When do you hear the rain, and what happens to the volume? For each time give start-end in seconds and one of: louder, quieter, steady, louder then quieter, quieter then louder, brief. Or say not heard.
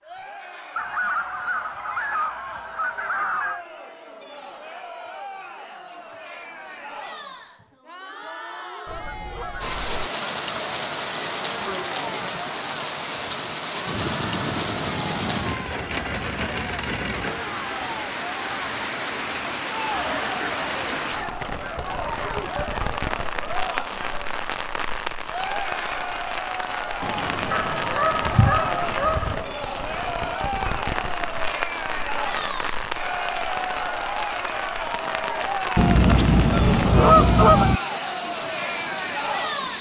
9.6-39.7 steady.